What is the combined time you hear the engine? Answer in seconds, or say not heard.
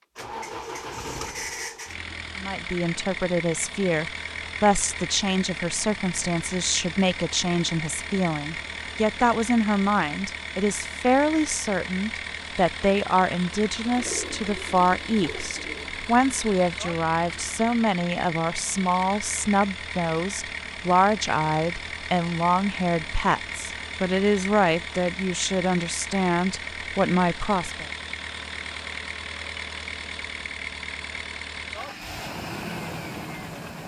34 s.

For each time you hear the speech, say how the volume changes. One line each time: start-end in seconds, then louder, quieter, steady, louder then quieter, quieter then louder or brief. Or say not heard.
2.4-27.9 steady.